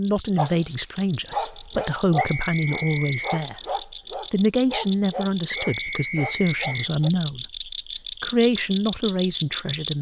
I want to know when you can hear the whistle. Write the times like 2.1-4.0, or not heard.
2.1-3.5, 5.5-6.9.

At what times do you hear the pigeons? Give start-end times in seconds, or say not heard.
not heard.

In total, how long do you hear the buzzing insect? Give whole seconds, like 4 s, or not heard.
not heard.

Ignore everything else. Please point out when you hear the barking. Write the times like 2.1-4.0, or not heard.
0.3-7.1.